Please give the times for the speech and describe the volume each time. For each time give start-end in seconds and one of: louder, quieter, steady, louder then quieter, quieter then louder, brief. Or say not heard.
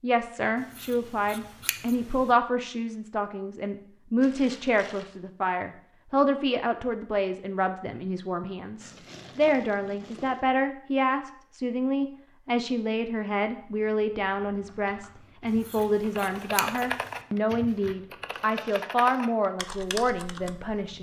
0.0-20.9 steady.